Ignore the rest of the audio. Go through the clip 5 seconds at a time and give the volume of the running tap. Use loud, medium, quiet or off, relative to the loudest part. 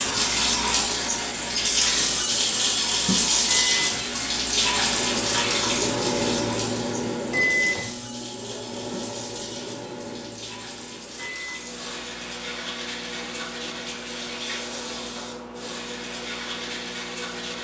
loud, medium, quiet, quiet.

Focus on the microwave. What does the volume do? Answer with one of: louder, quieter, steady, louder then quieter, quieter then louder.
louder then quieter.